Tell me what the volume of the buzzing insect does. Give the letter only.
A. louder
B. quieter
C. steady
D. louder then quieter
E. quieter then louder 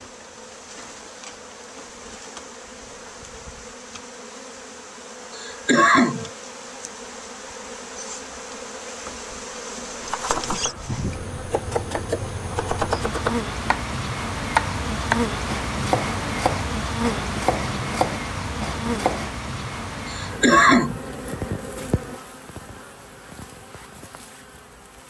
D.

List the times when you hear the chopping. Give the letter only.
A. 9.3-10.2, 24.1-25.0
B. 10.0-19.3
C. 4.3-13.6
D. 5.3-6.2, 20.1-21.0
B.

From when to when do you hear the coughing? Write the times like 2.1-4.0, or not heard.
5.3-6.2, 20.1-21.0.